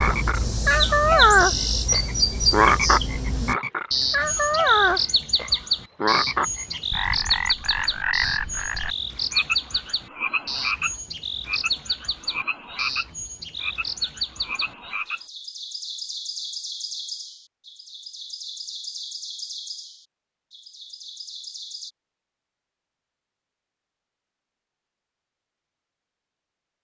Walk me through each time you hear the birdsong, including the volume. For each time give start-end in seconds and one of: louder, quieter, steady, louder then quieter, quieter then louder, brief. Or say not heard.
0.0-21.9 quieter.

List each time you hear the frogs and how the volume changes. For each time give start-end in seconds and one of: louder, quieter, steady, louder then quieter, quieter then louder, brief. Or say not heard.
0.0-15.2 quieter.